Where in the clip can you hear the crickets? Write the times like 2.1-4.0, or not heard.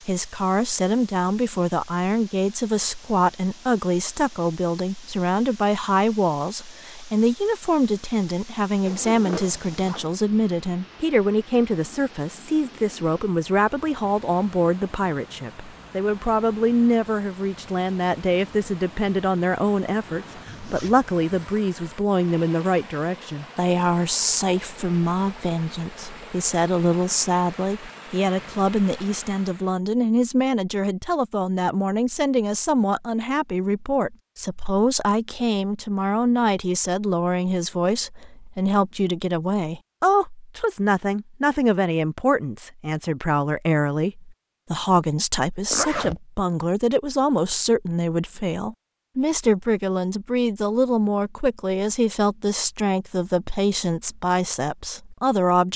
not heard.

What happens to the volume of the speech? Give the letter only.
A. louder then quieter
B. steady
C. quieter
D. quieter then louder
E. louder
B.